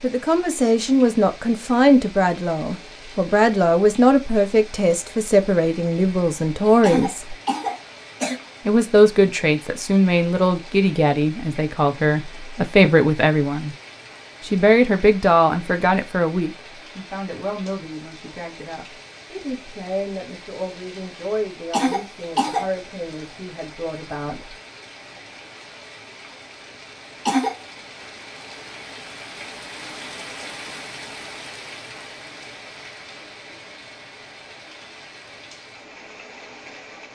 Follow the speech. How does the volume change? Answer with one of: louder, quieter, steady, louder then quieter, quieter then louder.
quieter.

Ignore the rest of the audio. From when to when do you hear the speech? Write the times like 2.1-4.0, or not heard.
0.0-7.3, 8.7-13.8, 14.4-24.6.